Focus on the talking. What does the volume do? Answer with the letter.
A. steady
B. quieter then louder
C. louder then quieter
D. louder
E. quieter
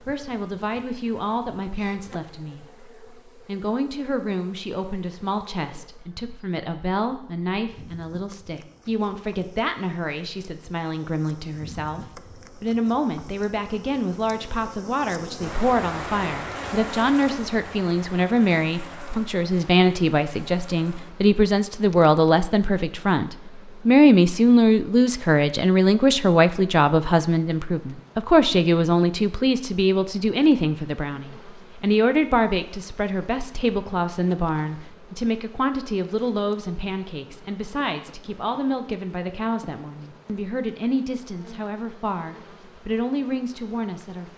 C.